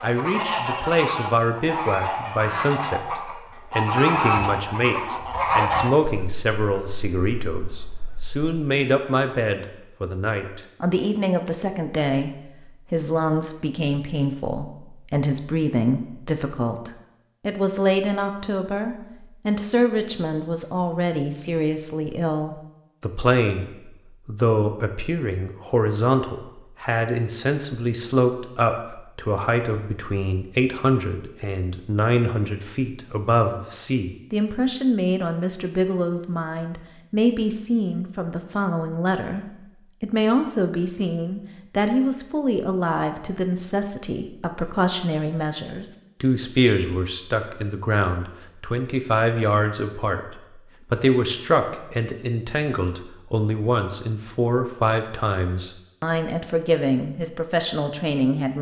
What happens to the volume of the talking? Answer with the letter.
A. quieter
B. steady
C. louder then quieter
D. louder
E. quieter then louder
B.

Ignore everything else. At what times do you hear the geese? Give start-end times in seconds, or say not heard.
0.0-8.5.